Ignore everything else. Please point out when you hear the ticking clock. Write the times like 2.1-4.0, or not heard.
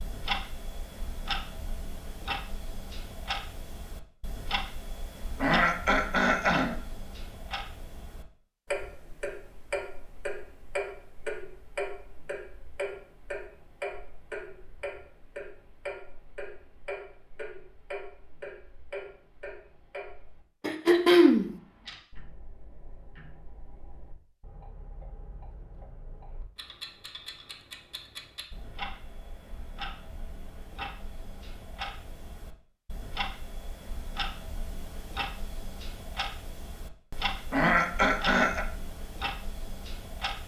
0.0-40.4.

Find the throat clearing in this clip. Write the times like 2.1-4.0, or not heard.
5.4-6.8, 20.6-21.5, 37.5-38.6.